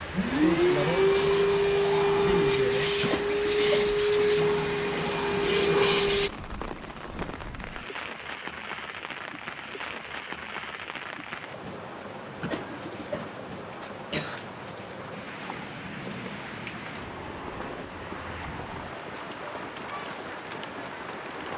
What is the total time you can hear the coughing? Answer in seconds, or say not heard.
3 s.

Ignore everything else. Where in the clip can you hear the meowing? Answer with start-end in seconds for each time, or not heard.
not heard.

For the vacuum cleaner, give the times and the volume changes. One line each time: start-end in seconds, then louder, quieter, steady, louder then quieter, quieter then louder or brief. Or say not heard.
0.0-6.3 steady.